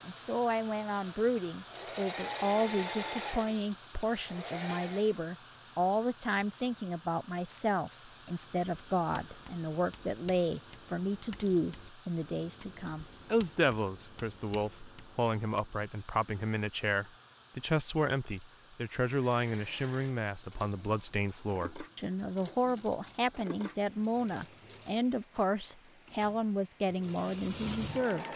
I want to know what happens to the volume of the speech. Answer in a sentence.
The volume of the speech stays about the same.